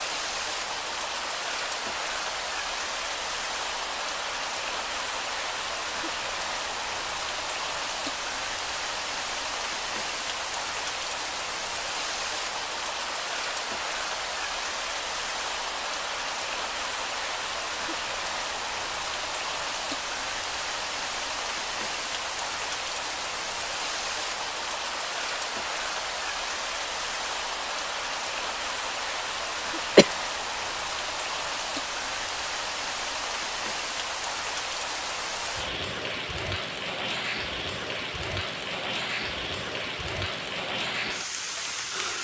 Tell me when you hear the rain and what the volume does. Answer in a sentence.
The rain can be heard from 0.0 to 42.2 s, at a steady volume.